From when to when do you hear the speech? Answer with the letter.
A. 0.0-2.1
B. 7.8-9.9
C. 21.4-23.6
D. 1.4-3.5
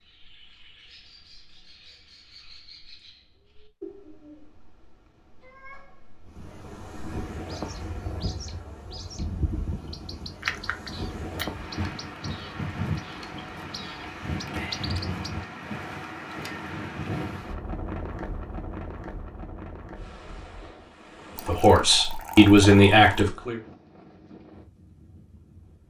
C.